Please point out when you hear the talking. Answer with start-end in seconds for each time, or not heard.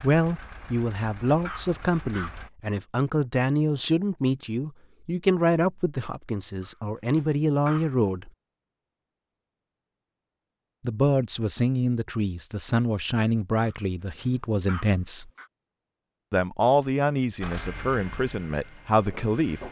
0.0-8.3, 10.8-15.3, 16.3-19.6.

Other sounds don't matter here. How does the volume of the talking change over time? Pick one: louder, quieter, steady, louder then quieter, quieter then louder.
steady.